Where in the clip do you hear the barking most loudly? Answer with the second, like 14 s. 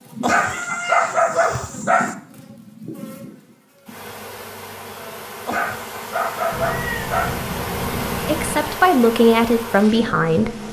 1 s.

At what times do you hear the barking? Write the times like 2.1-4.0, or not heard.
0.2-2.1, 5.5-7.4.